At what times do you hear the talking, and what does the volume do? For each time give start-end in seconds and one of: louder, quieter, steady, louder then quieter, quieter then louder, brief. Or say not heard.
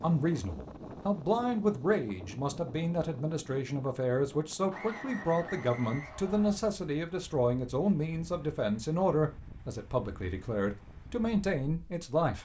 0.0-12.4 steady.